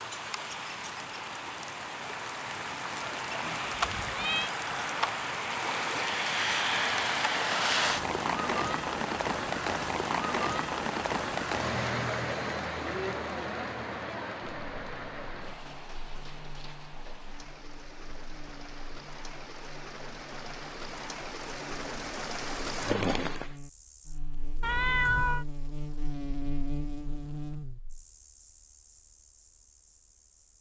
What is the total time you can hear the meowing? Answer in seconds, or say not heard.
2 s.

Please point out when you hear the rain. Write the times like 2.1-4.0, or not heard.
0.0-23.6.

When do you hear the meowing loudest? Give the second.
25 s.